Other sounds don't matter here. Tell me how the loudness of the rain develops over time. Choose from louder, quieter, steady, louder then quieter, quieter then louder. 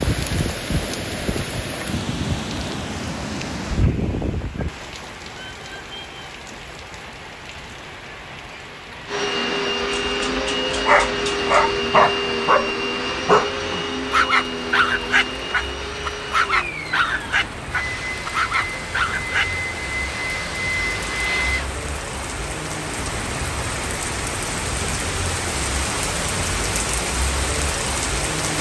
quieter then louder.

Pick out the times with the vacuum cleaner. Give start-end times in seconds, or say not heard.
9.1-21.7.